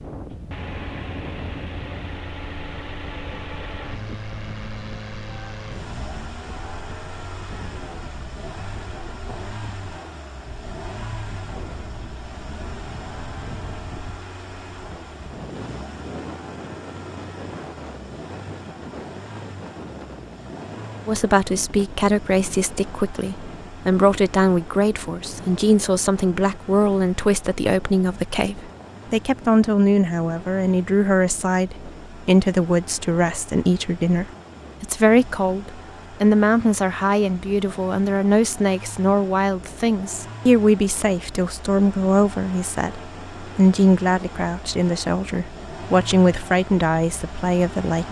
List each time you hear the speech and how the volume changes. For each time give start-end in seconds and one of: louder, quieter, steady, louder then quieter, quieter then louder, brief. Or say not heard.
21.1-48.0 steady.